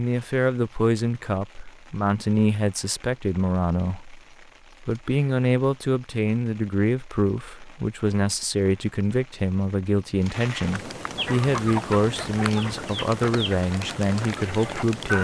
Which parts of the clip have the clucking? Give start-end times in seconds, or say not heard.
11.2-15.1.